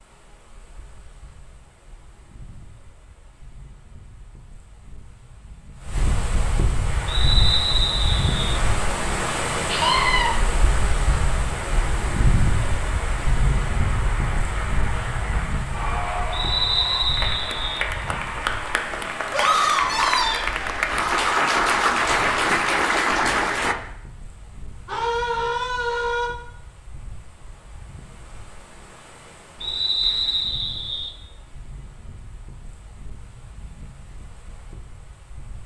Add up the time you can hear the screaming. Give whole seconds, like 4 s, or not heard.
3 s.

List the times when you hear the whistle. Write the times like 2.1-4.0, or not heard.
7.0-8.6, 16.3-17.9, 29.6-31.1.